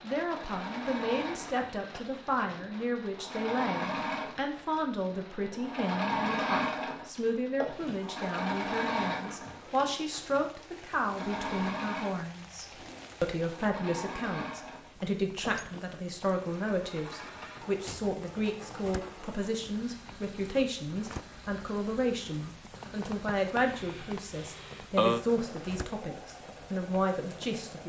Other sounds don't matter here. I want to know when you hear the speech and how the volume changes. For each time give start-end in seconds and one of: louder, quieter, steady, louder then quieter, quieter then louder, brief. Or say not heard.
0.0-27.8 steady.